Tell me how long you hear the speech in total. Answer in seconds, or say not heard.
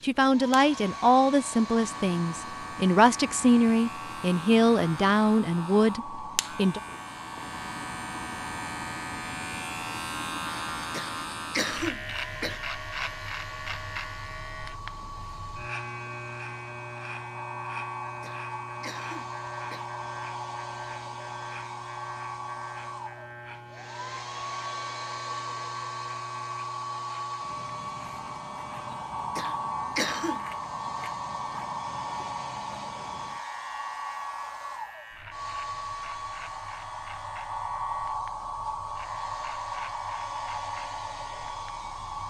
7 s.